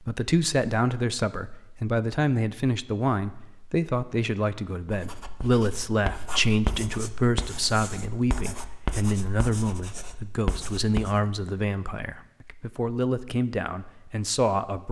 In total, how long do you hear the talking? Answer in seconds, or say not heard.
15 s.